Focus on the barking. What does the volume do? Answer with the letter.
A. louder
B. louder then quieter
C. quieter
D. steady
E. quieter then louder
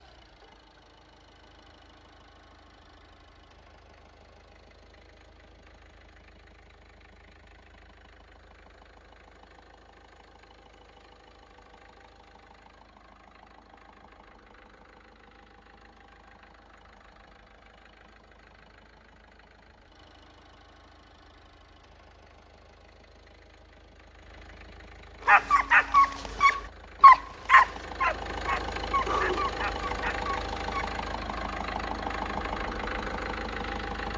B.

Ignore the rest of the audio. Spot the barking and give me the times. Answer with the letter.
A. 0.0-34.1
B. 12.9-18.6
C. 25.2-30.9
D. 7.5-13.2
C.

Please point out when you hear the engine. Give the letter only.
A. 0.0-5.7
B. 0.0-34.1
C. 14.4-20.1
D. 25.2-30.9
B.